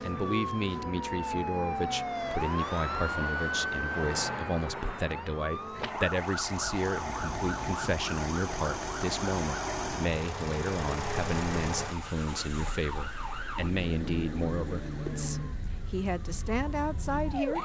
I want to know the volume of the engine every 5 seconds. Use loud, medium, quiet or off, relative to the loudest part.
off, loud, loud, quiet.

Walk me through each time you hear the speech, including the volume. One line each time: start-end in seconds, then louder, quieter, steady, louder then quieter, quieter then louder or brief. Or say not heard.
0.0-17.5 steady.